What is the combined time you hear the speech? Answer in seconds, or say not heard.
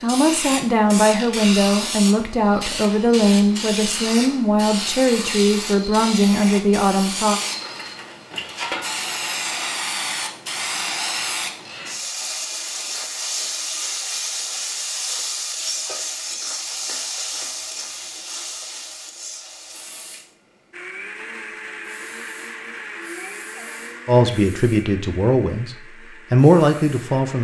11 s.